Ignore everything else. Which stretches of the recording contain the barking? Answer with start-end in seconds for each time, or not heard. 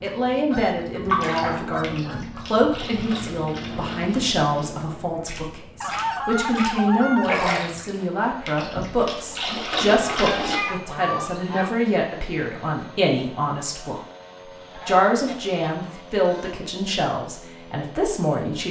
not heard.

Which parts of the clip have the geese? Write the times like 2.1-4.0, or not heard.
0.5-2.5, 5.8-7.5, 9.8-11.7, 14.7-16.6.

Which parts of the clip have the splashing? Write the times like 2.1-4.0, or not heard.
1.1-10.6.